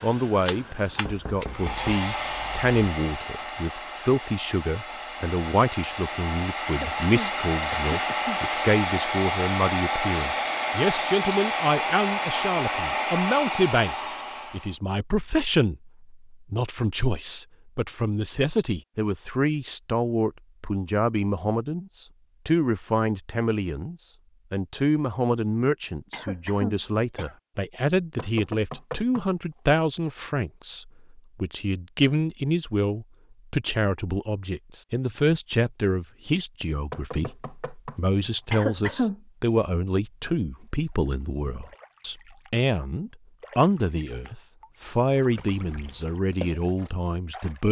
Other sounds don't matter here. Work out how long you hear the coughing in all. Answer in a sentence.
You can hear the coughing for 4 seconds altogether.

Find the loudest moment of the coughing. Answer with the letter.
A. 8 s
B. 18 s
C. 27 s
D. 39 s
D.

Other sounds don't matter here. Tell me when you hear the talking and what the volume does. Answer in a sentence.
You can hear the talking from 0.0 to 47.6 s, at a steady volume.